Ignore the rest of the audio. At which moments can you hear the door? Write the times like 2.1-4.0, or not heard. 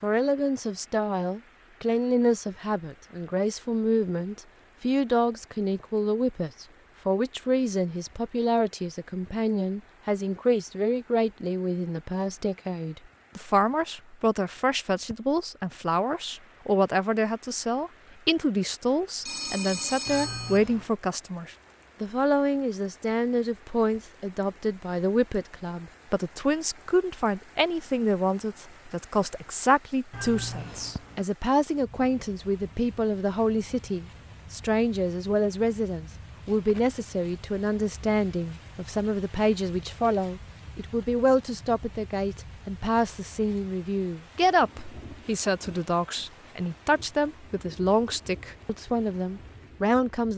not heard.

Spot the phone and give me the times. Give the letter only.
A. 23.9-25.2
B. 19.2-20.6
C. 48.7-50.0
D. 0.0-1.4
B.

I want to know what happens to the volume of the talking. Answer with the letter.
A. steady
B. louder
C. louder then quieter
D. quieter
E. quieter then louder
A.